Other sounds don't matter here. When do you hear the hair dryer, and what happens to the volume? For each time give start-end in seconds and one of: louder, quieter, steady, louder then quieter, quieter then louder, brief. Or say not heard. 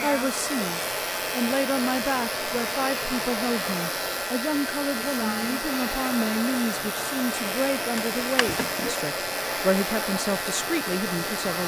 0.0-11.6 steady.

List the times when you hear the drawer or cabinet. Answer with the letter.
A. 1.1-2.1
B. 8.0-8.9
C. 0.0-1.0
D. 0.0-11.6
B.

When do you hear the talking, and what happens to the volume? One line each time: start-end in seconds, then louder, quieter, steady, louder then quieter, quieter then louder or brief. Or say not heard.
0.0-11.6 steady.